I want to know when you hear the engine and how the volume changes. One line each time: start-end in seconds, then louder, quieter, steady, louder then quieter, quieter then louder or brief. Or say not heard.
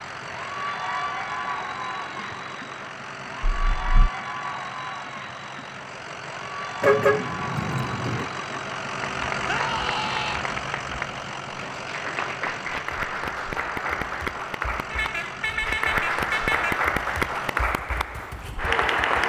0.0-19.2 louder then quieter.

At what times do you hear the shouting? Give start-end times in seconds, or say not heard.
9.4-10.4.